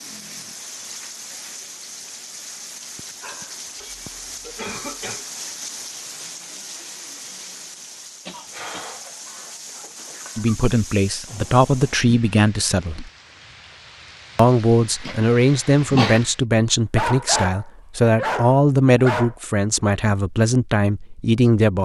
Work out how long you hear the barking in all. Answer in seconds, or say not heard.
5 s.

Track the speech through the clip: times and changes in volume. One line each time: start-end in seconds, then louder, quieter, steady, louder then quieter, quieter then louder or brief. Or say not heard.
10.3-13.1 brief
14.3-21.8 steady.